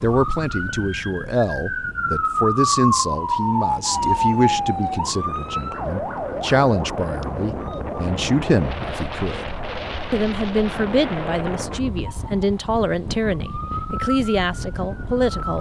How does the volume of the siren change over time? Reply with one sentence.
The volume of the siren goes down.